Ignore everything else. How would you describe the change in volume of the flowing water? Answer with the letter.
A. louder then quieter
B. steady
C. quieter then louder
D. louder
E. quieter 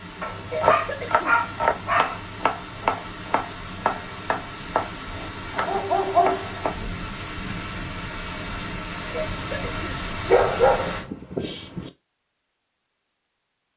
D.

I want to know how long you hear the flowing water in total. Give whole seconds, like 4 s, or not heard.
11 s.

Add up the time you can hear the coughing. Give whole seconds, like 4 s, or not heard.
2 s.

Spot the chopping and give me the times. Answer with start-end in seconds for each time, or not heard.
0.3-6.8.